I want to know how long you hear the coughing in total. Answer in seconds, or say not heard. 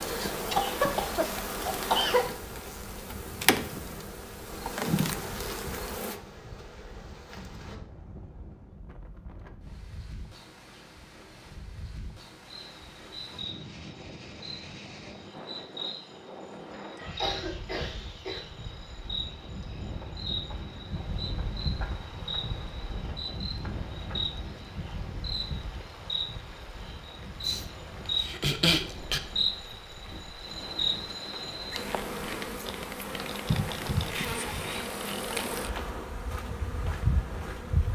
5 s.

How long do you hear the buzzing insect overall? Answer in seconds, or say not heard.
33 s.